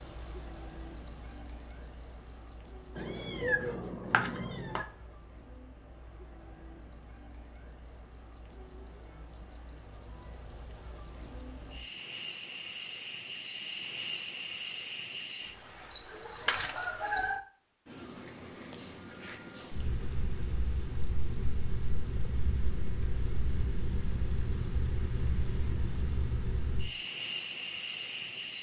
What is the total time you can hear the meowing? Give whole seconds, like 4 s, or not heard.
2 s.